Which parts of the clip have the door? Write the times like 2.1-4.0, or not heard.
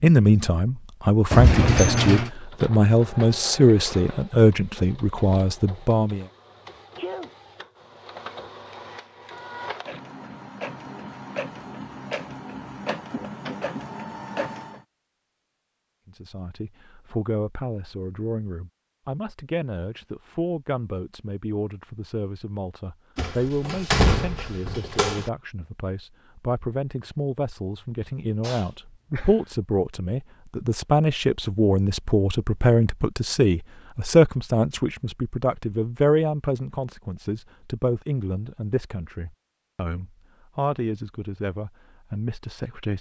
1.3-2.3, 23.1-25.3.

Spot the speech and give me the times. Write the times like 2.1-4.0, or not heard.
0.0-6.2, 16.1-42.9.